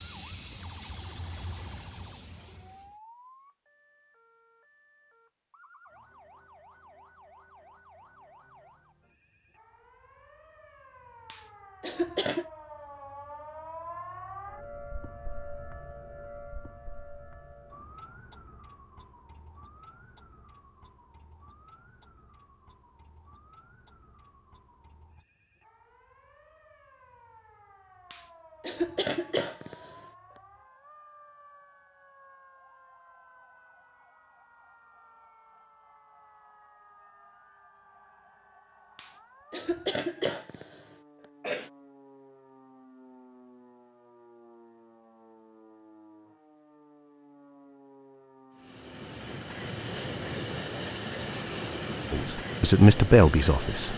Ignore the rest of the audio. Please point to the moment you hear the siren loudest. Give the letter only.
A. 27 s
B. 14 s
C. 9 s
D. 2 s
B.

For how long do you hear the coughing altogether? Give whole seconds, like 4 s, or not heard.
6 s.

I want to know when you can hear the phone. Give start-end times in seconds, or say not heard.
not heard.